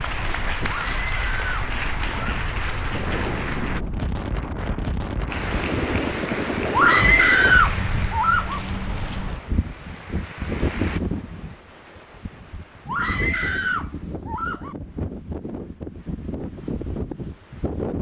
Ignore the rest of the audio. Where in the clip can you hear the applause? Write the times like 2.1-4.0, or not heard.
0.0-3.9, 5.3-11.0.